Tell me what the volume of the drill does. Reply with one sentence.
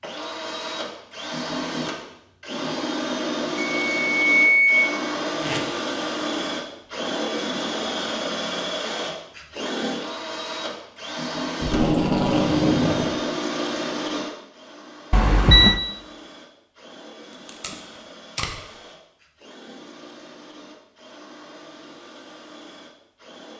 The volume of the drill goes down.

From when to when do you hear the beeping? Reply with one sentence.
The beeping can be heard from 3.8 to 4.9 s and from 15.1 to 15.8 s.